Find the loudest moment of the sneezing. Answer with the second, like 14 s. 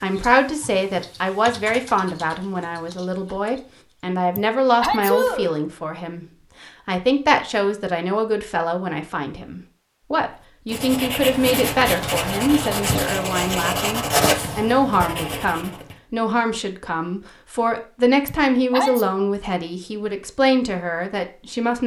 5 s.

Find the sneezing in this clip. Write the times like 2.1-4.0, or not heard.
4.3-5.6, 18.2-19.1.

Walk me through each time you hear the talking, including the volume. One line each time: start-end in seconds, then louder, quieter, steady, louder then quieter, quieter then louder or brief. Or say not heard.
0.0-21.8 steady.